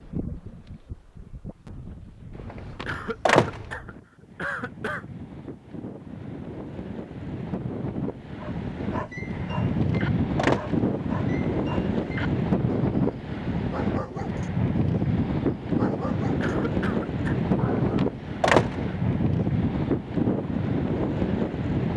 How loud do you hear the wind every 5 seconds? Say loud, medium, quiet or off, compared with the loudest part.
quiet, medium, loud, loud, loud.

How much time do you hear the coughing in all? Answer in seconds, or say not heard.
3 s.